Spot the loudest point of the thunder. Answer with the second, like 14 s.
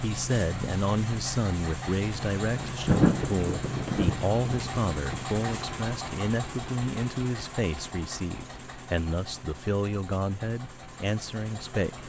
3 s.